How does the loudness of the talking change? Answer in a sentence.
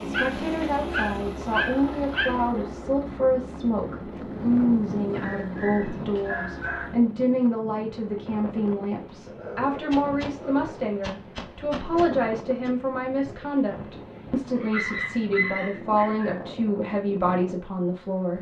The volume of the talking stays about the same.